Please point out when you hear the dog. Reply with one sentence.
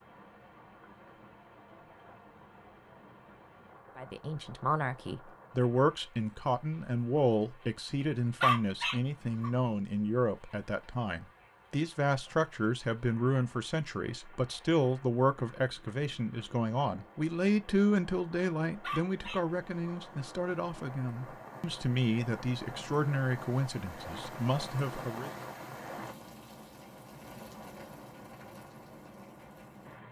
You can hear the dog from 8.4 to 9.5 s and from 18.8 to 20.1 s.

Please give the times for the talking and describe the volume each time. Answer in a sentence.
You can hear the talking from 4.0 to 25.3 s, at a steady volume.